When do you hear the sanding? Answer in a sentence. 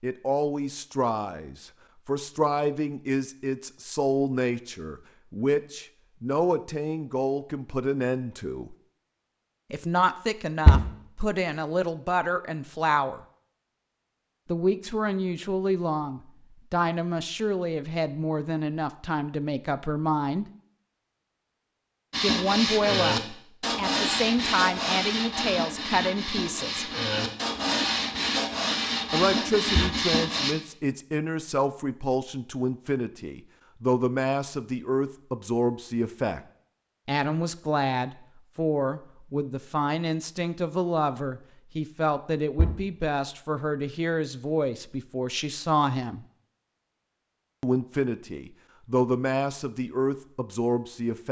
You can hear the sanding from 22.1 to 30.6 s.